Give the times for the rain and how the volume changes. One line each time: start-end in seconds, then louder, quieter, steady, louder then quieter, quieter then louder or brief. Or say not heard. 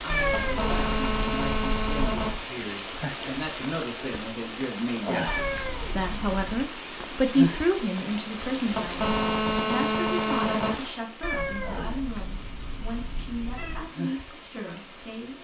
0.0-15.3 quieter.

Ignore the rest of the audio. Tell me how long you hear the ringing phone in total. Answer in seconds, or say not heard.
4 s.